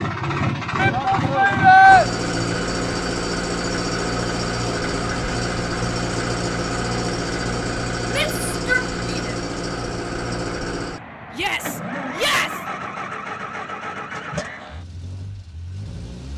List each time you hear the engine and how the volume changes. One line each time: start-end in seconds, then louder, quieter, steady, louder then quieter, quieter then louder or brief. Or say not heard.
0.0-16.3 quieter.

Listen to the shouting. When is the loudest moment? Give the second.
2 s.